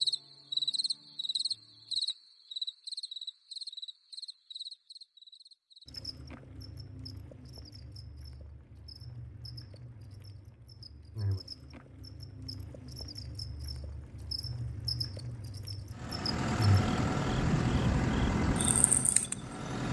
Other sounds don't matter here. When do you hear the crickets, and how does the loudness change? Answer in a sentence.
You can hear the crickets from 0.0 to 19.4 s, getting quieter then louder.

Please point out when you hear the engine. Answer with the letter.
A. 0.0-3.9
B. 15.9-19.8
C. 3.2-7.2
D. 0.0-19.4
B.